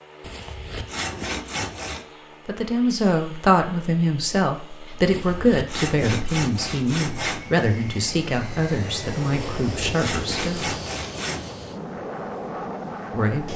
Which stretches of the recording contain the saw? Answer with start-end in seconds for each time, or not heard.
0.2-2.0, 5.0-7.5, 9.3-11.5.